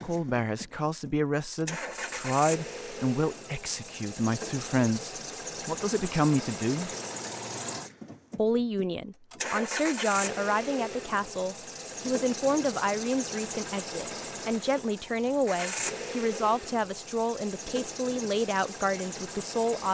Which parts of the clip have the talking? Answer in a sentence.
The talking can be heard from 0.0 to 6.9 s and from 8.3 to 19.8 s.